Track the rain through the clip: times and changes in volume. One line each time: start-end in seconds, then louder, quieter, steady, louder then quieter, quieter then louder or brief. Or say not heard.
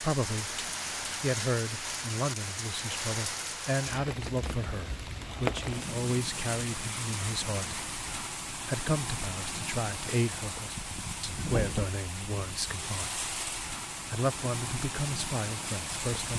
0.0-16.3 steady.